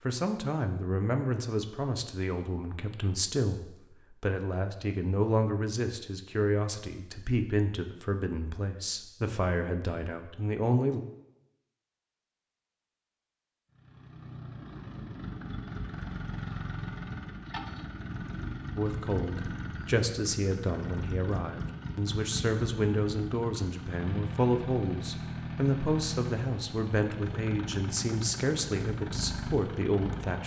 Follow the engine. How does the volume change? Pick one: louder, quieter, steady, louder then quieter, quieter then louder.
steady.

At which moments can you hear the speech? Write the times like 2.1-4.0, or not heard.
0.0-11.0, 18.8-30.4.